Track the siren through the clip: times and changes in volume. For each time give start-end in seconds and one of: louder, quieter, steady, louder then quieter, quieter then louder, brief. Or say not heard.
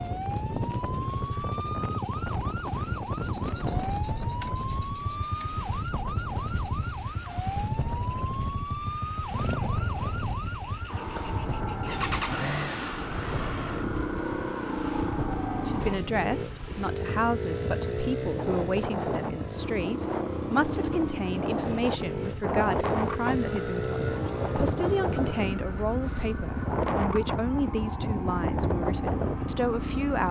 0.0-16.0 steady
23.4-30.2 steady.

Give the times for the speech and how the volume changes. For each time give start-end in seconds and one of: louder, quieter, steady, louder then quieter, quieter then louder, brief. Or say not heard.
15.7-30.2 steady.